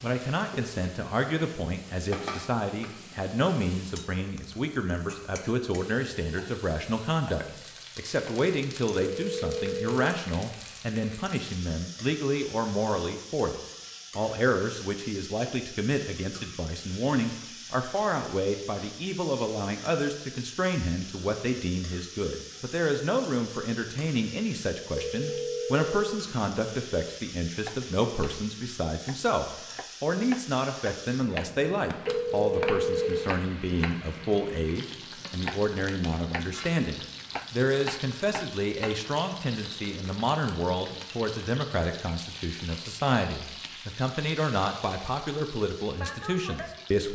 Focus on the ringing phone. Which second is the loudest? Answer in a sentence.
The volume of the ringing phone peaks at 33 seconds.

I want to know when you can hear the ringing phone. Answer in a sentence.
You can hear the ringing phone from 9.2 to 9.9 s, from 24.9 to 25.9 s and from 32.0 to 33.1 s.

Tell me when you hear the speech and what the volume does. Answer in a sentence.
The speech can be heard from 0.0 to 13.6 s, at a steady volume; and from 14.2 to 47.1 s, at a steady volume.